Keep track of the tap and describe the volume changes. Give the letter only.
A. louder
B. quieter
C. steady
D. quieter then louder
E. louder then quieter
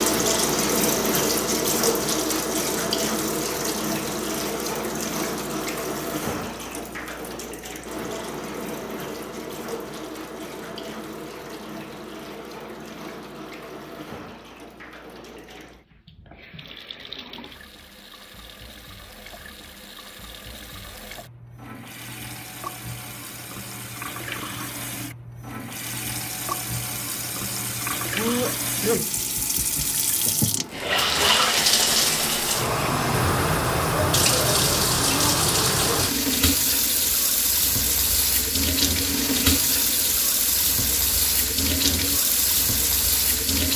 D.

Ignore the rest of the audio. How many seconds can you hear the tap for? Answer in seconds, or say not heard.
44 s.